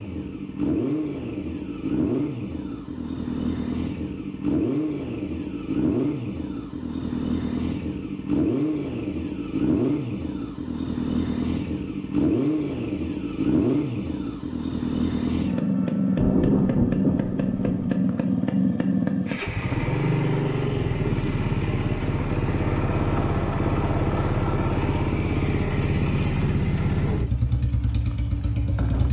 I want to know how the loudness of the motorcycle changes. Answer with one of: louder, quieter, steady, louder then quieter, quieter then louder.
steady.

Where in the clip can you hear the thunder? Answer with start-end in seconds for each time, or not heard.
16.1-17.9.